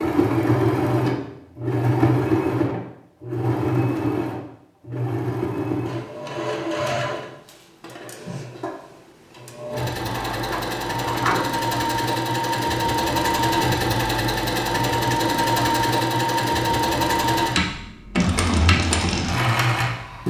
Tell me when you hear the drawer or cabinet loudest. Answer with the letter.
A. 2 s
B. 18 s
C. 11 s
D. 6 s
C.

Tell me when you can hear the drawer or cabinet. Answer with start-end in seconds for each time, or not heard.
10.0-11.4.